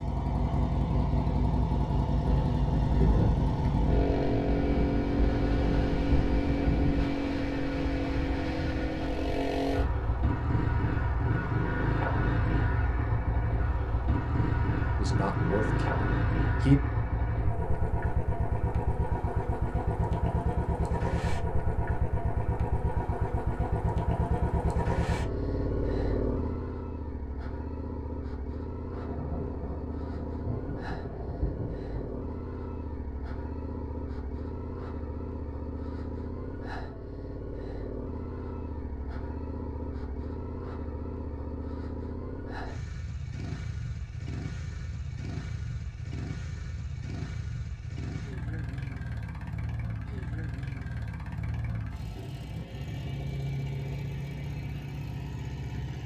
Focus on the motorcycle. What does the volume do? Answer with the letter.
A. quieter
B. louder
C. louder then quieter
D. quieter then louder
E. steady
A.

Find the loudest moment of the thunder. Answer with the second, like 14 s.
3 s.